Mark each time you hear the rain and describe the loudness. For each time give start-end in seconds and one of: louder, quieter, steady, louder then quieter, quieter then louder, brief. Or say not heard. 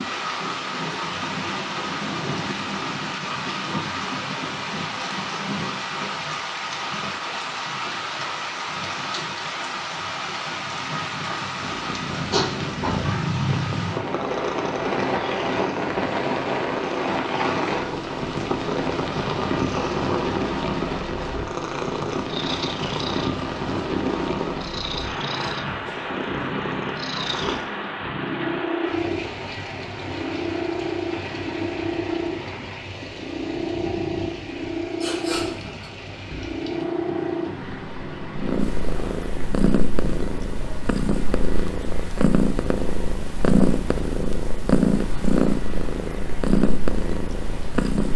0.0-48.1 quieter.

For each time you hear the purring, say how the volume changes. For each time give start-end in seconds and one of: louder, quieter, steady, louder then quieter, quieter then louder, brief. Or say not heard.
11.6-48.1 louder.